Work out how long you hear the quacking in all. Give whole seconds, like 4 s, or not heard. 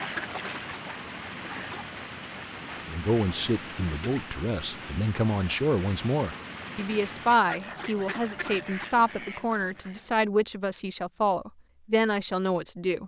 5 s.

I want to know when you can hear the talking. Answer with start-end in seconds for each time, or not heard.
2.9-13.0.